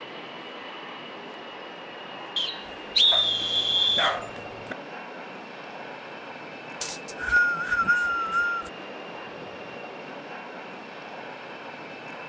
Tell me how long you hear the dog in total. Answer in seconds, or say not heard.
2 s.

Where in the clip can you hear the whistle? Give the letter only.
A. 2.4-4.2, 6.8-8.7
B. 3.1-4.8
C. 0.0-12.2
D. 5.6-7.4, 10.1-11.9
A.